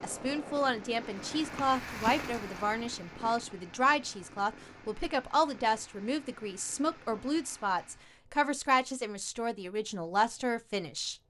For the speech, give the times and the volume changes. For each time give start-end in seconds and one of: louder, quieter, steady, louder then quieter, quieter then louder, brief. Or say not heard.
0.0-11.2 steady.